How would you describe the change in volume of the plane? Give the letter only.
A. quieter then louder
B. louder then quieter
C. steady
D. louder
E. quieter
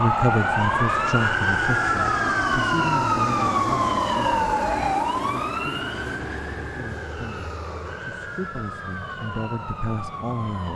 E.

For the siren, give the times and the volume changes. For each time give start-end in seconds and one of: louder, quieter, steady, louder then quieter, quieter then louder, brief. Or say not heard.
0.0-10.7 quieter.